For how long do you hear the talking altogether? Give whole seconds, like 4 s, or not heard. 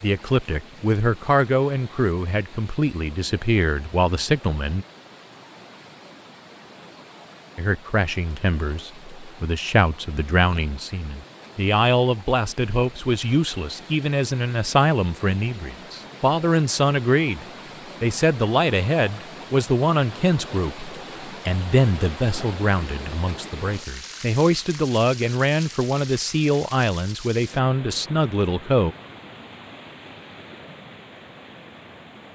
26 s.